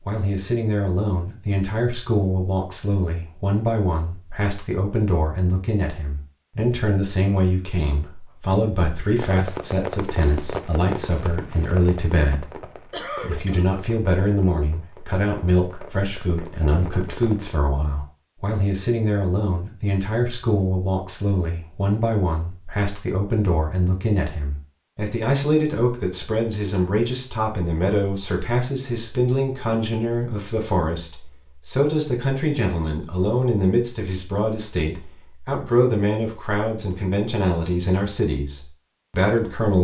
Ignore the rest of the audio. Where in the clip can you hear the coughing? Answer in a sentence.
The coughing can be heard from 12.9 to 13.7 s.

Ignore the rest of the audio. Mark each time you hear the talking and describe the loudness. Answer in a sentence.
The talking can be heard from 0.1 to 39.7 s, at a steady volume.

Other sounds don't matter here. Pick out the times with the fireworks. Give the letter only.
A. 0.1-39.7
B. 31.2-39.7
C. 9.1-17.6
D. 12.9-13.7
C.